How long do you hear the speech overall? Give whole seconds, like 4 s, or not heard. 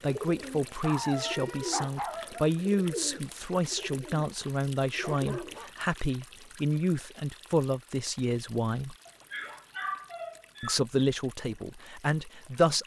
11 s.